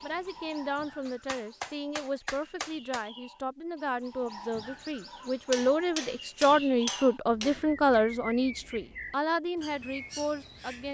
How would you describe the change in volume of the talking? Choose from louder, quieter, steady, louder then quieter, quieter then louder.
louder then quieter.